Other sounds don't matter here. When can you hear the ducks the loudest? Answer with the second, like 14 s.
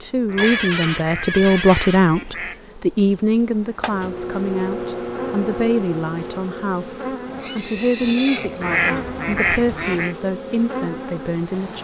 9 s.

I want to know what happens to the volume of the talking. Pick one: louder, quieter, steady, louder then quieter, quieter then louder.
quieter.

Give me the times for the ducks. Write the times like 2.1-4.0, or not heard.
0.2-2.6, 8.6-10.2.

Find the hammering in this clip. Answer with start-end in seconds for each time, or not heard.
not heard.